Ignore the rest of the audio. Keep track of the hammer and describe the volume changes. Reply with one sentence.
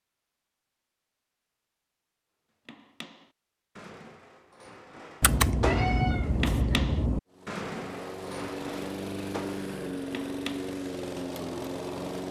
The loudness of the hammer goes up, then down.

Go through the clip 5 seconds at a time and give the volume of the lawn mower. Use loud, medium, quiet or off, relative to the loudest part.
off, loud, loud.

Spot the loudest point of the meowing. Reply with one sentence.
The volume of the meowing peaks at 6 seconds.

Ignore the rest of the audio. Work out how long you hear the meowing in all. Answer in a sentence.
You can hear the meowing for 2 seconds altogether.